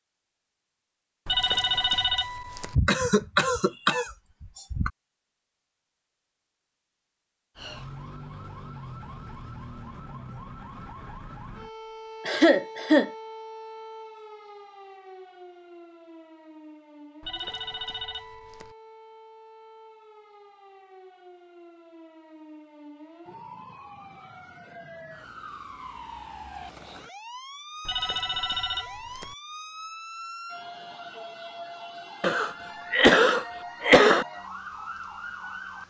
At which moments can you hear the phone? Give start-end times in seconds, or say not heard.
1.2-2.8, 17.2-18.8, 27.9-29.4.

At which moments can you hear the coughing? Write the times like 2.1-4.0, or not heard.
2.7-4.9, 12.2-13.1, 32.2-34.2.